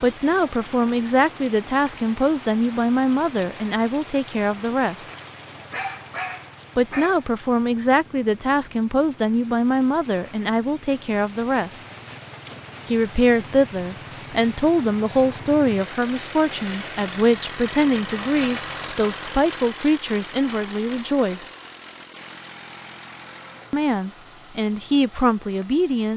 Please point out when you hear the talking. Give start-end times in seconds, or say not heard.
0.0-5.0, 6.8-11.7, 12.8-21.4, 23.7-26.1.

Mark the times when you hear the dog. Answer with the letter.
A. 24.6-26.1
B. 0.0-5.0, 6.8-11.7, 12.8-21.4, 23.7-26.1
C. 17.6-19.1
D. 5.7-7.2
D.